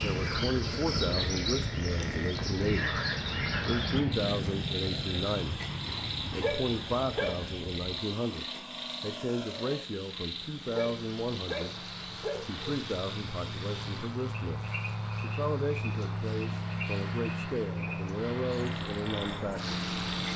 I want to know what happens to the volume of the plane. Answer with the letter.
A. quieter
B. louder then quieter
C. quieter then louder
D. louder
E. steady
C.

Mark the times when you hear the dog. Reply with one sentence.
The dog can be heard from 6.4 to 7.7 s and from 10.7 to 12.7 s.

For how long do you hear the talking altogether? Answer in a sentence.
You can hear the talking for 18 seconds altogether.